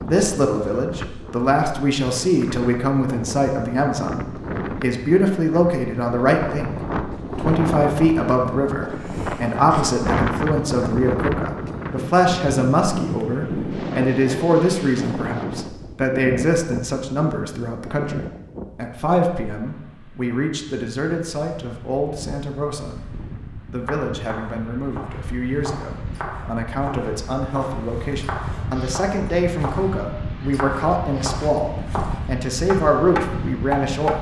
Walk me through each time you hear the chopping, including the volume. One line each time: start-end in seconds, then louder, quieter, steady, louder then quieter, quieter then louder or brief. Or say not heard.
23.8-34.1 louder.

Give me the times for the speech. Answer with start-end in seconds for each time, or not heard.
0.0-34.1.